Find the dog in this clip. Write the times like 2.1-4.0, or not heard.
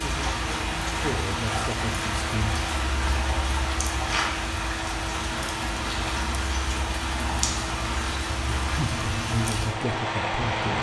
not heard.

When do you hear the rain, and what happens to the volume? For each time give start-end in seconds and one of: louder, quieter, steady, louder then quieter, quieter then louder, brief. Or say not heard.
0.0-10.7 steady.